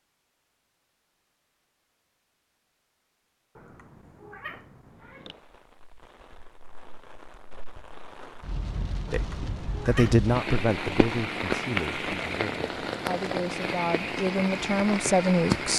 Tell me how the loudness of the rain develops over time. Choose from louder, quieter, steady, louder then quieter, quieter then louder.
louder.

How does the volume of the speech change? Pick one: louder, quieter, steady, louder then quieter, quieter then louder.
quieter then louder.